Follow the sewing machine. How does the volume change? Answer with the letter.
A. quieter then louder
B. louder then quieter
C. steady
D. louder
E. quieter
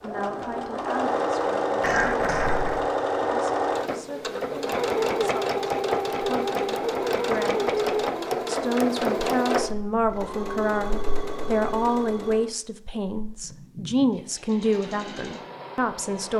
E.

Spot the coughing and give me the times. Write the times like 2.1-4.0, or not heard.
1.8-2.9.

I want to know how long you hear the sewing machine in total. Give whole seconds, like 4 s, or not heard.
16 s.